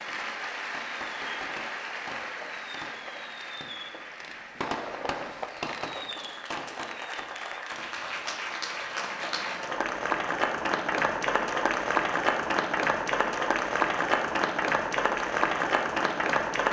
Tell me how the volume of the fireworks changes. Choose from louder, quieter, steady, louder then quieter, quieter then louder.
louder then quieter.